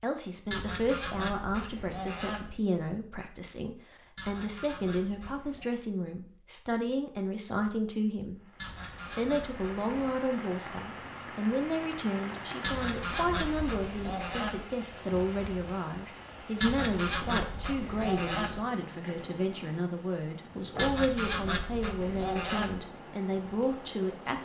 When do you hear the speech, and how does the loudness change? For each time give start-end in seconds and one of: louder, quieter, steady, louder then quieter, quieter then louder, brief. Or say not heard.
0.0-24.4 steady.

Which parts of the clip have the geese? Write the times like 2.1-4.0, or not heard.
0.5-2.5, 4.2-5.7, 8.6-10.2, 12.6-14.7, 16.6-18.6, 20.8-22.8.